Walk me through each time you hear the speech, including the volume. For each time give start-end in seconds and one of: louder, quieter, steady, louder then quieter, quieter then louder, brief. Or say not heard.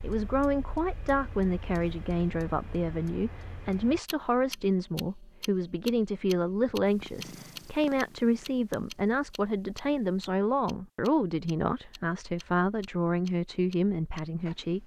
0.0-14.8 steady.